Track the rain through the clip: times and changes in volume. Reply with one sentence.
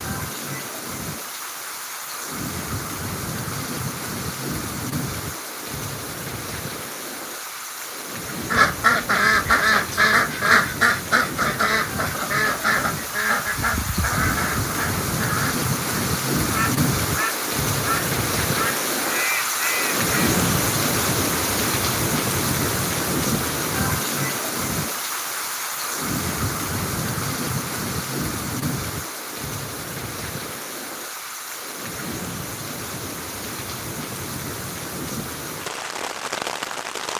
The rain can be heard from 0.0 to 37.1 s, getting louder then quieter.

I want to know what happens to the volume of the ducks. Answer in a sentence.
The volume of the ducks goes down.